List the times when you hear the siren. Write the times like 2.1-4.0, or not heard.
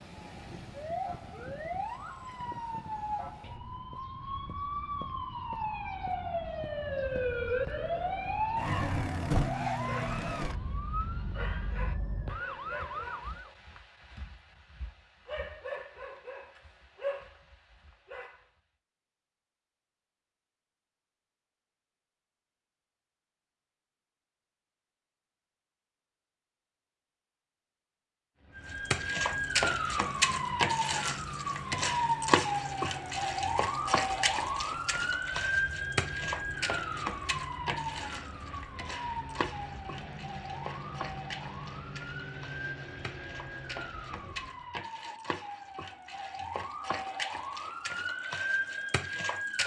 0.0-13.5, 28.6-49.6.